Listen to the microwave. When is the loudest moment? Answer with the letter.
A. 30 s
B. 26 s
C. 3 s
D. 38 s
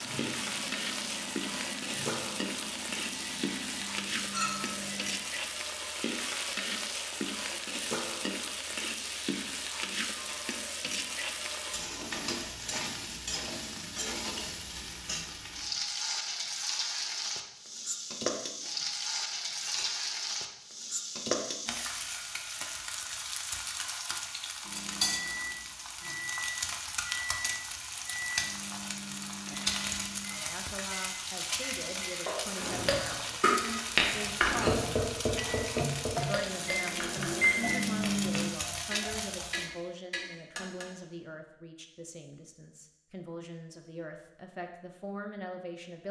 D.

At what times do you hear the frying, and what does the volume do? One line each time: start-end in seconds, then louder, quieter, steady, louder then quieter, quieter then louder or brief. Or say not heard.
0.0-39.7 steady.